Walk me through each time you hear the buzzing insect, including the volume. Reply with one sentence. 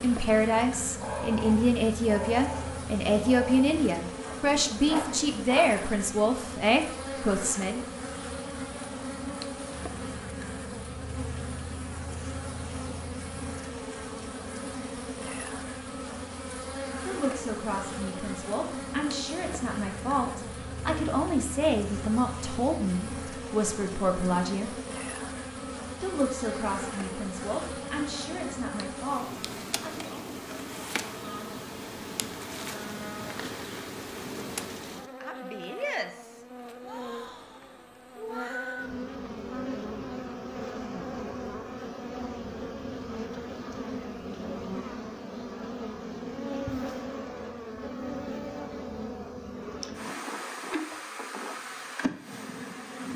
You can hear the buzzing insect from 0.0 to 53.1 s, at a steady volume.